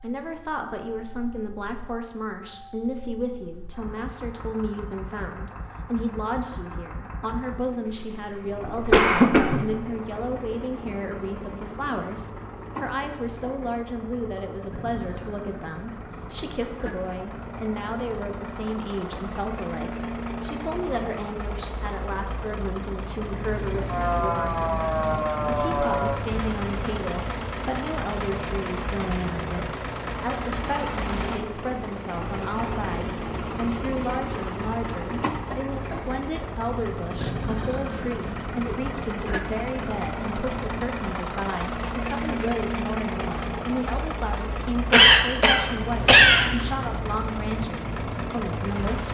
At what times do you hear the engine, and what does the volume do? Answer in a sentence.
The engine can be heard from 0.0 to 49.0 s, getting louder.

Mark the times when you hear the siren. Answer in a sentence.
You can hear the siren from 23.9 to 26.2 s.